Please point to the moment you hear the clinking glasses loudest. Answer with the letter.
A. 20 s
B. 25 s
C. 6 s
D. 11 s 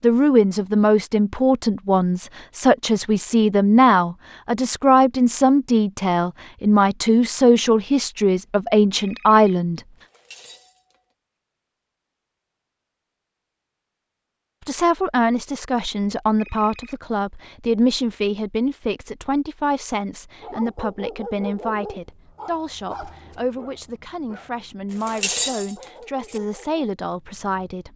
B.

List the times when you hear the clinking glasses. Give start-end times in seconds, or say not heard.
10.0-10.9, 24.9-26.4.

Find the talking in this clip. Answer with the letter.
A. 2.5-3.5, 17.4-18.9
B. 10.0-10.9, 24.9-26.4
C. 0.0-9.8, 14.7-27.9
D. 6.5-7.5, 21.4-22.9
C.